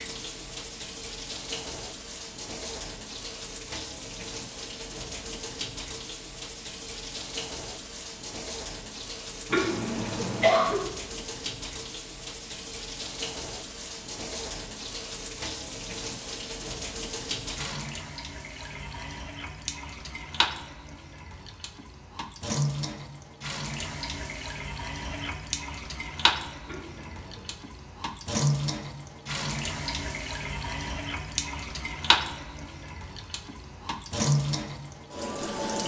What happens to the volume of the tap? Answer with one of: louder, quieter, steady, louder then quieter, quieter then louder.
louder.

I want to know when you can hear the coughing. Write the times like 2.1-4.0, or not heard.
9.5-10.8, 26.6-27.5.